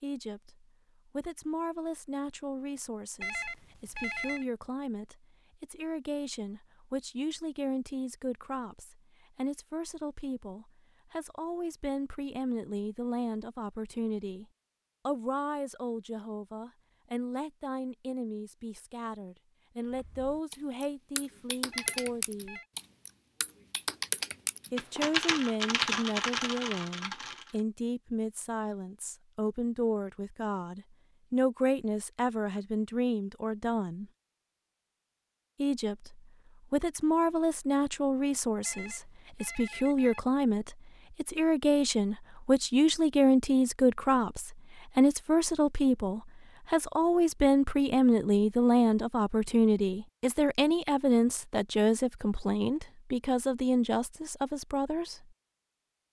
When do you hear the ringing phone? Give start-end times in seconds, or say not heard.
3.2-4.5, 21.7-22.6, 38.6-40.2.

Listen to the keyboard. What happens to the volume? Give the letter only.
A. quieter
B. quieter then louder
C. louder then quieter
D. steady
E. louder
E.